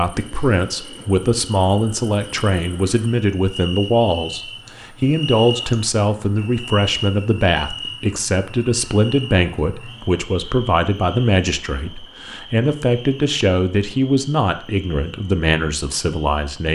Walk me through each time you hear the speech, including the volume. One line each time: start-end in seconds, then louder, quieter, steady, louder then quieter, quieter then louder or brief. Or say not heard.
0.0-16.7 steady.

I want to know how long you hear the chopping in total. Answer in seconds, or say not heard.
not heard.